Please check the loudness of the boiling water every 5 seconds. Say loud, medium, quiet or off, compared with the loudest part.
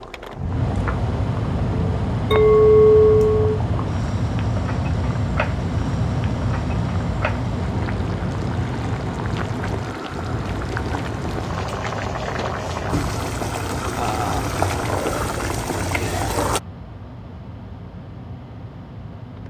quiet, medium, loud, loud.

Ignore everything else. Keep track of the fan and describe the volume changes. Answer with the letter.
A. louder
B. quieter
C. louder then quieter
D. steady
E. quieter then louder
B.